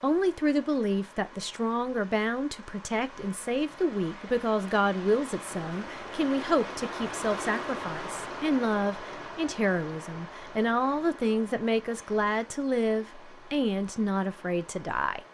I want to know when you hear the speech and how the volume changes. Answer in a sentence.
You can hear the speech from 0.0 to 15.2 s, at a steady volume.